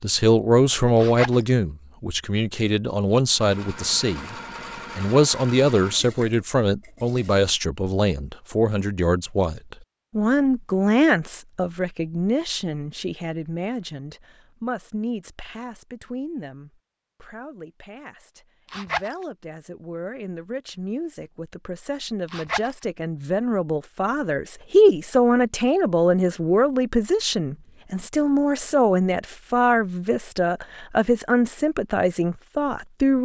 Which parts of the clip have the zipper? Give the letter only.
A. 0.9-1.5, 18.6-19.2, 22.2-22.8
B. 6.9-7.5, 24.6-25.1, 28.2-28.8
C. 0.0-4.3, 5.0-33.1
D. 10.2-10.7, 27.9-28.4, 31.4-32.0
A.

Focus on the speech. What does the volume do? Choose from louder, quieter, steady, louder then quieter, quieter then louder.
quieter then louder.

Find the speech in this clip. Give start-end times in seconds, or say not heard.
0.0-4.3, 5.0-33.1.